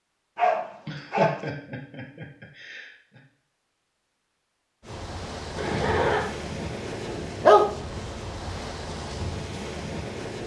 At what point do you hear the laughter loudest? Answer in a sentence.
The volume of the laughter peaks at 6 seconds.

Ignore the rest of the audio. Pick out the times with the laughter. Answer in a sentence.
You can hear the laughter from 0.8 to 3.2 s and from 5.5 to 6.2 s.